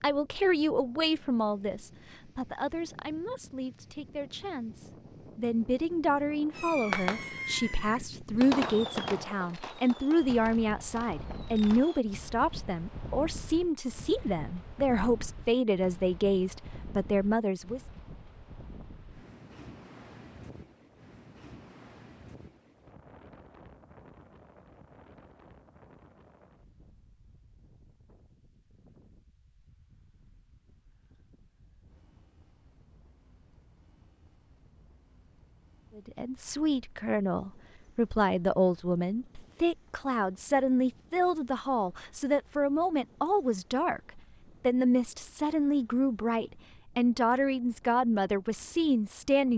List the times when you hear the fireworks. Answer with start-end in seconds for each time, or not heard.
6.5-12.0.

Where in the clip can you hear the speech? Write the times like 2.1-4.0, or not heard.
0.0-17.9, 36.0-49.5.